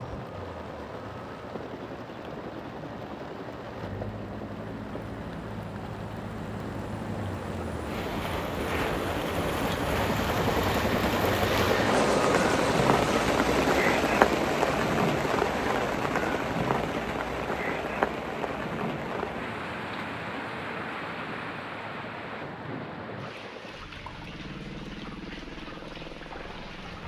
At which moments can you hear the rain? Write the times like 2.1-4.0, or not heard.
0.0-27.0.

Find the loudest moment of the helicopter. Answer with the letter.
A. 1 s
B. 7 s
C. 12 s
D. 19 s
C.